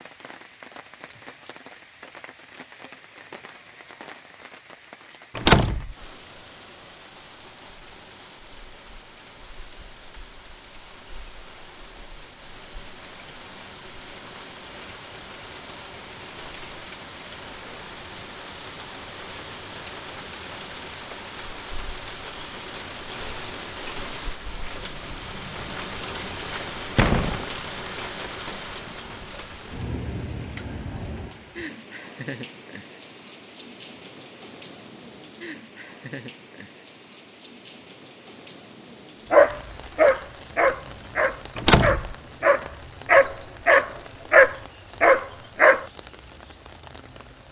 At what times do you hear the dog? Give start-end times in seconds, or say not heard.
39.3-45.9.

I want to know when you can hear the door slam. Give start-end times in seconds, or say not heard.
5.3-6.0, 26.9-27.4, 41.5-42.1.